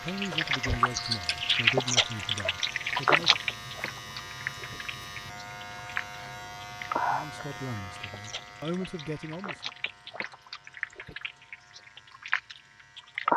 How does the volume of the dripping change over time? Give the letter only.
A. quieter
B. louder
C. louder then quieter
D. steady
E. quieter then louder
E.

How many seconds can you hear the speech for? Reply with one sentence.
You can hear the speech for 6 seconds altogether.